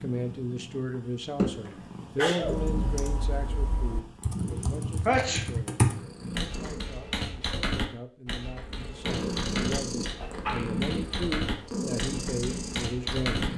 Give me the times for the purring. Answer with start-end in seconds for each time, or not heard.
0.0-7.0, 8.6-13.5.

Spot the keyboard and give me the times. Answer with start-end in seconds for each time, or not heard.
2.4-13.5.